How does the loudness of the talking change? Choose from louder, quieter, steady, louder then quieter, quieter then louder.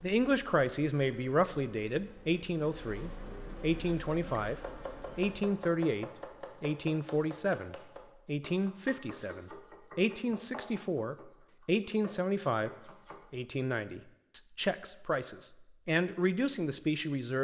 steady.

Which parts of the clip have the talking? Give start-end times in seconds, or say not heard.
0.0-17.3.